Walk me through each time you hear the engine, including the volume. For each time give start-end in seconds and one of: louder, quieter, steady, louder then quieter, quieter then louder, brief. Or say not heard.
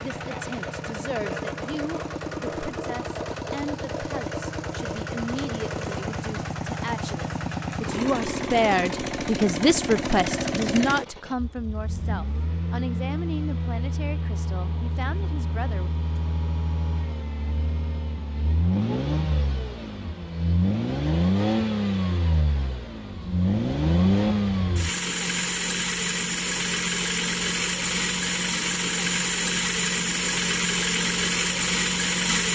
0.0-32.4 louder.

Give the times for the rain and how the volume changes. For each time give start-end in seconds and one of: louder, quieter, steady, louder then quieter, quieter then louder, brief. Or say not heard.
not heard.